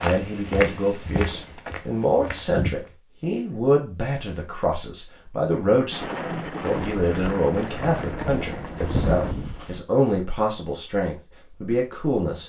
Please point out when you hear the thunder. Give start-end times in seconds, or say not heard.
5.9-9.3.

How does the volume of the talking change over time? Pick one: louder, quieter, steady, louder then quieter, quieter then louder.
steady.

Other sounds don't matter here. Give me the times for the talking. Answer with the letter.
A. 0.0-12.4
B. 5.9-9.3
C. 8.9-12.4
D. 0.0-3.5
A.